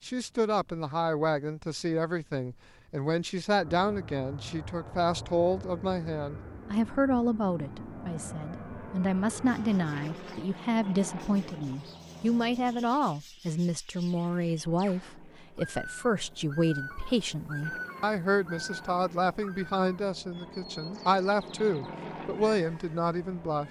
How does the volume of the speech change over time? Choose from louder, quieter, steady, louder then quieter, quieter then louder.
steady.